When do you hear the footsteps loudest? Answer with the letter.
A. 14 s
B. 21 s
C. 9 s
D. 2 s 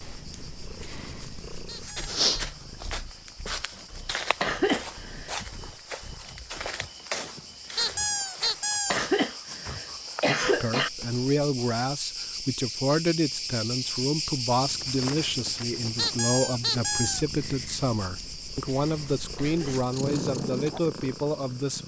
D.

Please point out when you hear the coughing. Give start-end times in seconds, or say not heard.
4.4-5.4, 8.9-10.9, 19.4-19.9.